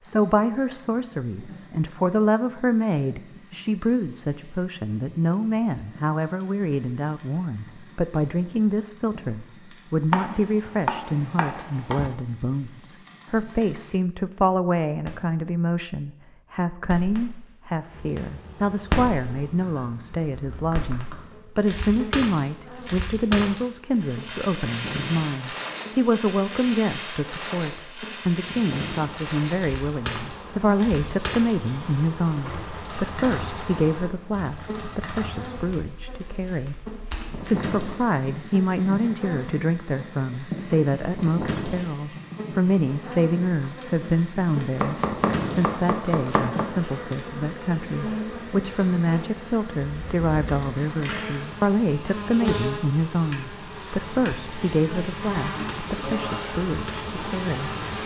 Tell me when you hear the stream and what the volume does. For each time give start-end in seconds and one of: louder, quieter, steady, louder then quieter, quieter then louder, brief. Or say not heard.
not heard.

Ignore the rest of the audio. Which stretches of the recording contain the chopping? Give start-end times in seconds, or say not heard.
10.1-12.1, 44.8-46.6.